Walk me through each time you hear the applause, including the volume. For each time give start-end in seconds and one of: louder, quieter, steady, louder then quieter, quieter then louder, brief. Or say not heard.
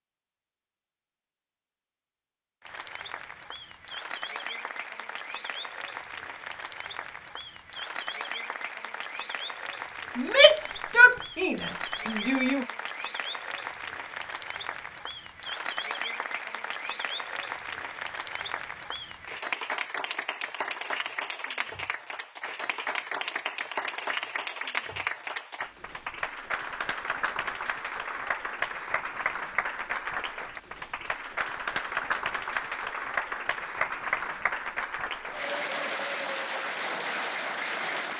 2.6-38.1 louder.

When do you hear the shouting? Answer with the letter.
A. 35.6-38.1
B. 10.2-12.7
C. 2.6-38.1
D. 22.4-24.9
B.